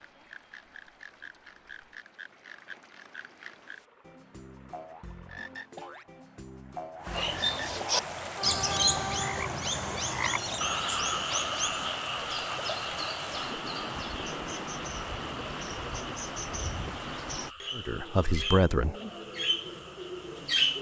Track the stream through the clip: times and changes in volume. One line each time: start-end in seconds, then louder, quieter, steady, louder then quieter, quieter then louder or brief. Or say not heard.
0.0-17.6 louder.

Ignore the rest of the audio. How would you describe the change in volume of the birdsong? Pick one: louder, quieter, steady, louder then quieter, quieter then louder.
quieter then louder.